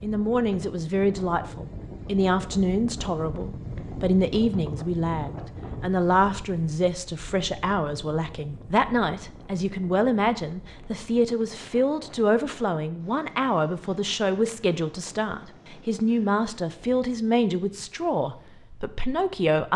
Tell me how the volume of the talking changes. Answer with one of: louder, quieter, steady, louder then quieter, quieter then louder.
steady.